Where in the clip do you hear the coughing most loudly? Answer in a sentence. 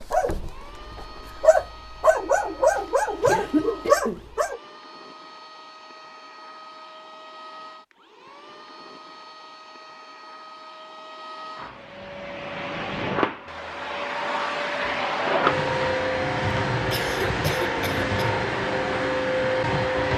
The volume of the coughing peaks at 3 seconds.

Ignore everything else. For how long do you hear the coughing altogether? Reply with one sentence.
The coughing can be heard for 3 seconds in total.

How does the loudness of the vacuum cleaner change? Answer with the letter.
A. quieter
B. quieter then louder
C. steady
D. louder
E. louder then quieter
D.